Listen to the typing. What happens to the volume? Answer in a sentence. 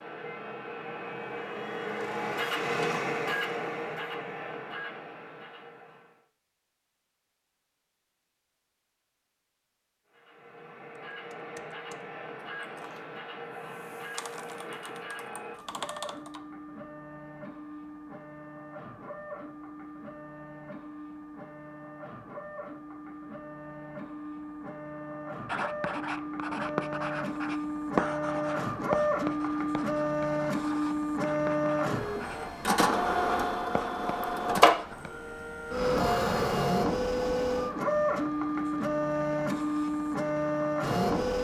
The loudness of the typing goes up.